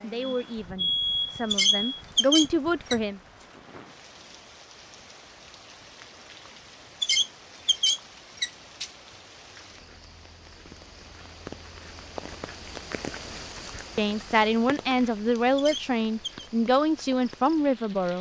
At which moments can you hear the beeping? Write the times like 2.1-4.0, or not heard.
0.2-2.0.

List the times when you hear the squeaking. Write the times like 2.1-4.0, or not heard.
1.5-3.0, 7.0-8.9, 15.6-16.5.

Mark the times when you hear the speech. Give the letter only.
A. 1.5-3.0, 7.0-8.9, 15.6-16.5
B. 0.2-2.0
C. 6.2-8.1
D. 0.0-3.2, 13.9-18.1
D.